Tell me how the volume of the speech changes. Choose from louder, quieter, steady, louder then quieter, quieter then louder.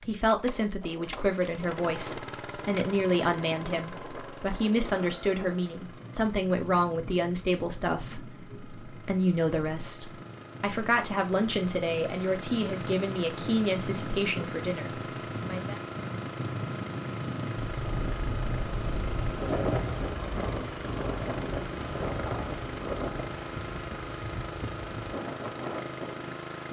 steady.